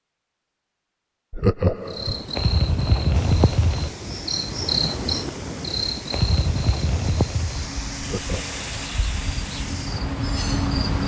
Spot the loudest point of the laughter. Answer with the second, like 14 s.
2 s.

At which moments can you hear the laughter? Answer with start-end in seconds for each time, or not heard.
1.3-2.2, 8.0-8.8.